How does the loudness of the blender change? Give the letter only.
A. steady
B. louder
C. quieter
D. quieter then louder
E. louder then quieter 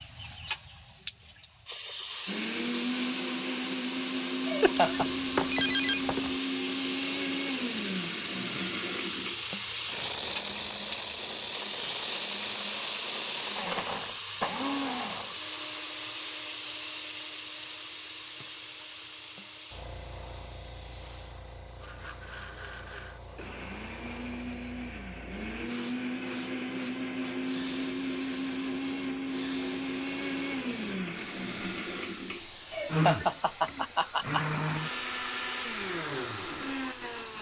D.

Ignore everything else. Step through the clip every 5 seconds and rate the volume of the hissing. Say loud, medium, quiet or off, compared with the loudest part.
loud, loud, loud, medium, quiet, quiet, quiet, quiet.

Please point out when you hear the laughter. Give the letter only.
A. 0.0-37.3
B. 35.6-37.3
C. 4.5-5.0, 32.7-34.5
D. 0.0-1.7
C.